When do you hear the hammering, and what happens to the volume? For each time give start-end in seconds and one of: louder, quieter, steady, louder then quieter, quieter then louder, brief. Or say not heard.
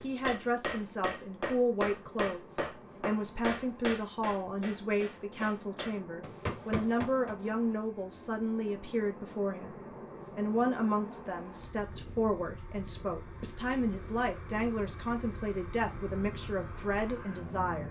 0.0-7.3 quieter then louder.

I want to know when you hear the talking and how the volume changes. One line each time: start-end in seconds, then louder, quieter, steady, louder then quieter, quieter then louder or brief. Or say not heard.
0.0-17.8 steady.